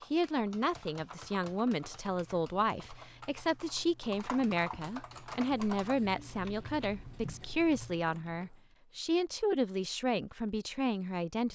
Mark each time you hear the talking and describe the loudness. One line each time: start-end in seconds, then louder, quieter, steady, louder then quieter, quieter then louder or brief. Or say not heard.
0.1-11.5 steady.